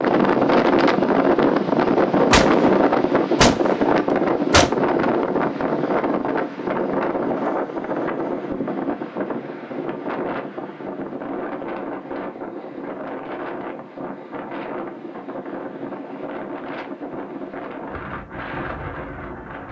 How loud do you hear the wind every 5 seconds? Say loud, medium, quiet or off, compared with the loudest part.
loud, medium, quiet, quiet.